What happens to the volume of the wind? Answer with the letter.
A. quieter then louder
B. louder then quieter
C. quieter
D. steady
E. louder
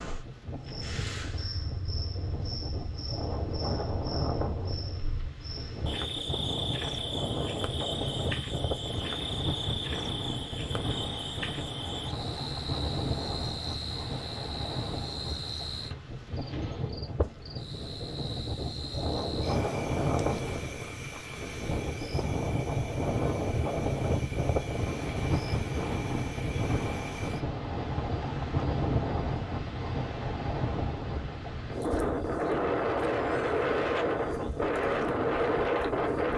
E.